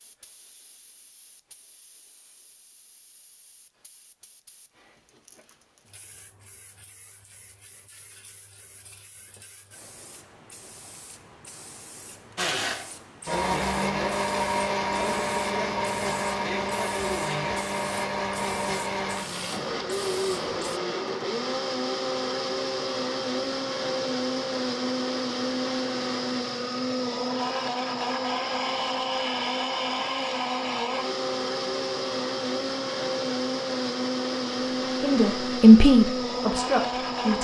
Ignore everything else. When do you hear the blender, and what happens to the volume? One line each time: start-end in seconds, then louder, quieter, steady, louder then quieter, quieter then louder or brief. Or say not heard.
12.3-37.3 steady.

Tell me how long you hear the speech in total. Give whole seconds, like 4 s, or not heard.
2 s.